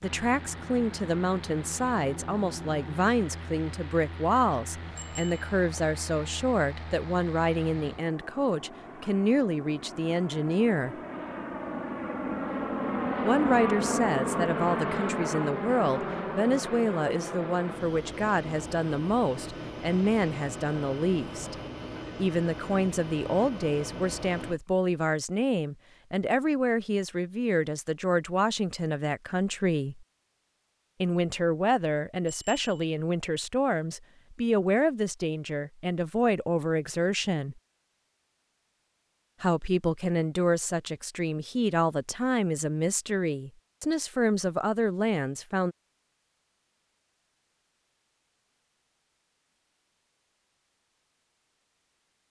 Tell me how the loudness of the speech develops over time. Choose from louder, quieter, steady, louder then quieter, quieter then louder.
steady.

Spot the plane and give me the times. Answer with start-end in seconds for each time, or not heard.
0.0-24.6.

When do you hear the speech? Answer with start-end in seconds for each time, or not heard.
0.0-10.9, 13.2-21.6, 22.1-30.1, 31.0-37.5, 39.4-45.8.